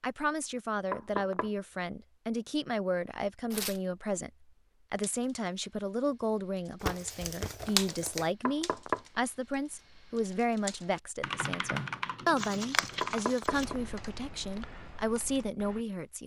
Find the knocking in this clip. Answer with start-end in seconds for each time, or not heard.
0.9-1.5, 8.4-9.0, 13.0-13.8.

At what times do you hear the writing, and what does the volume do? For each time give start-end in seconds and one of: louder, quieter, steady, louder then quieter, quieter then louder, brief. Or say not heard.
not heard.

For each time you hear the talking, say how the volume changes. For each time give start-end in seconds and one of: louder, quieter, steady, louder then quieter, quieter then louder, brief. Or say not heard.
0.0-16.2 steady.